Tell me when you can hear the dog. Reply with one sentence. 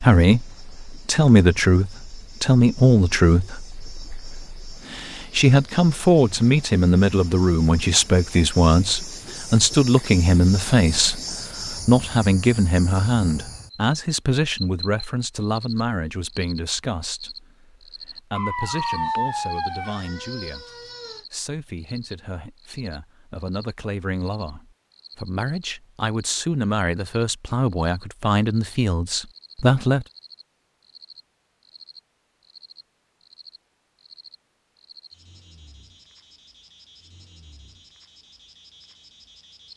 You can hear the dog from 18.3 to 21.2 s.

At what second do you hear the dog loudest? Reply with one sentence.
The loudest moment of the dog is at 19 seconds.